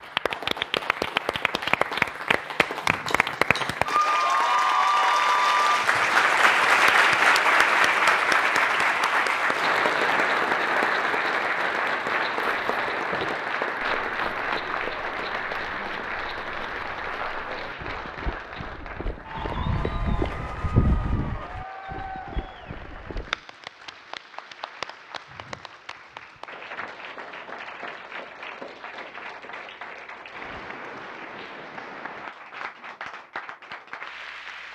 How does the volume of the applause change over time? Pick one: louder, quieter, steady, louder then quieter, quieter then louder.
quieter.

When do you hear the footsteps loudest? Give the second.
21 s.